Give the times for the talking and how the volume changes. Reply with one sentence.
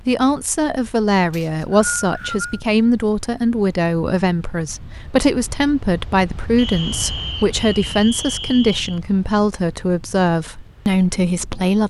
You can hear the talking from 0.1 to 11.8 s, at a steady volume.